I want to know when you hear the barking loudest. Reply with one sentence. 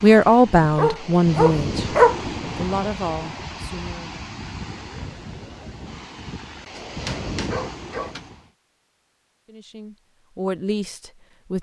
The volume of the barking peaks at 2 seconds.